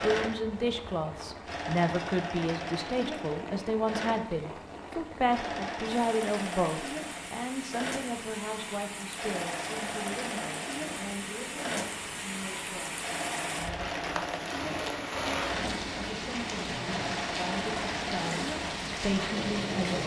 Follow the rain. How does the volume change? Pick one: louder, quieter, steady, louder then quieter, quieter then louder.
louder.